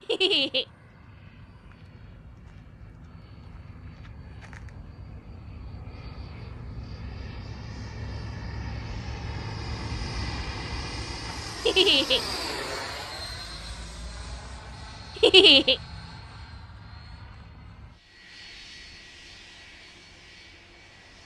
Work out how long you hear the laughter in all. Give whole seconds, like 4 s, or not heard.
2 s.